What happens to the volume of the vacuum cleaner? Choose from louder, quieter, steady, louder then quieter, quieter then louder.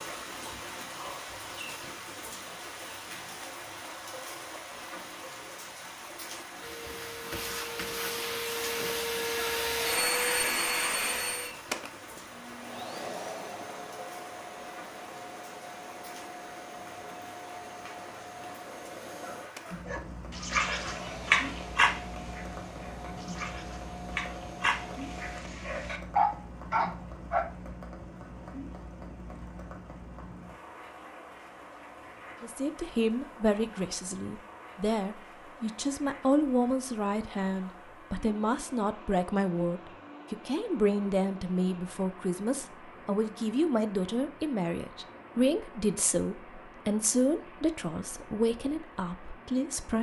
quieter.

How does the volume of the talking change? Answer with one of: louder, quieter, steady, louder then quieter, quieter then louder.
steady.